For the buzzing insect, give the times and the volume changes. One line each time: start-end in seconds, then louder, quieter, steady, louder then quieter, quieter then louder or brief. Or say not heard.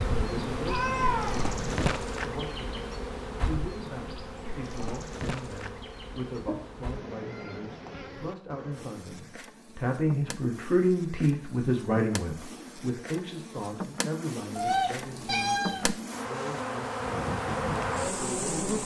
0.0-18.8 quieter then louder.